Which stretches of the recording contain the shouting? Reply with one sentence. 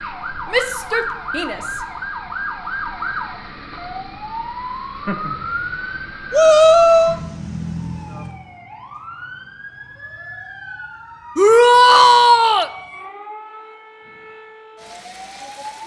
You can hear the shouting from 0.5 to 1.9 s, from 6.3 to 7.2 s and from 11.3 to 12.7 s.